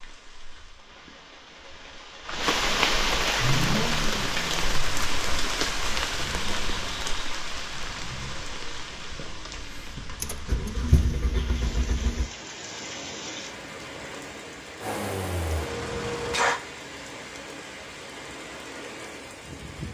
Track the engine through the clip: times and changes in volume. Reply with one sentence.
You can hear the engine from 3.4 to 12.3 s, getting quieter then louder; and briefly from 14.8 to 16.6 s.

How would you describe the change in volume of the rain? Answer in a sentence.
The loudness of the rain goes down.